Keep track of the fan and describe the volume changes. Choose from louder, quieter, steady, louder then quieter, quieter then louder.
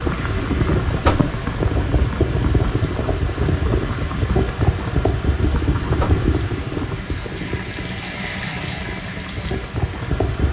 quieter.